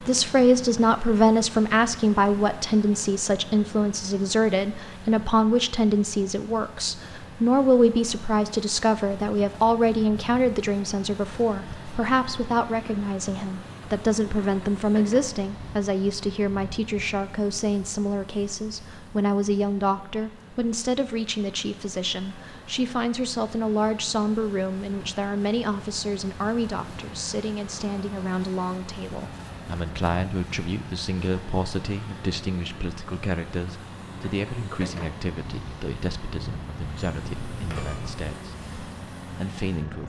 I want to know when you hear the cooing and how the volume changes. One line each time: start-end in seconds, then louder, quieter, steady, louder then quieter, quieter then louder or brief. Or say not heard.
not heard.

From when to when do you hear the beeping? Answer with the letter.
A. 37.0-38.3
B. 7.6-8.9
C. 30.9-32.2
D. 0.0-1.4
A.